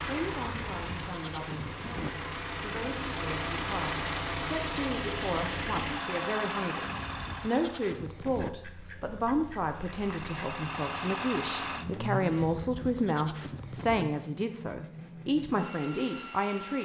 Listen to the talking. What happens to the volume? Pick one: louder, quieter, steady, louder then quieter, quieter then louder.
louder.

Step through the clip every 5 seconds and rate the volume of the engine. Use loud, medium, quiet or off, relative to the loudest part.
loud, loud, loud, medium.